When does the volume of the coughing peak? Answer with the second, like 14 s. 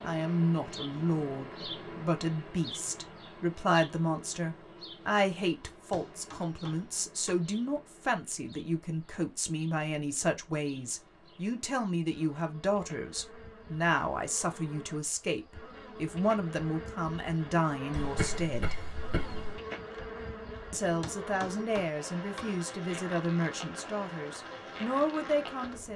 18 s.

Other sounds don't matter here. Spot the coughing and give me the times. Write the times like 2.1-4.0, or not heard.
17.9-19.6.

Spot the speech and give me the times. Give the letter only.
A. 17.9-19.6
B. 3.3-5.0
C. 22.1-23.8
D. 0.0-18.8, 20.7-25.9
D.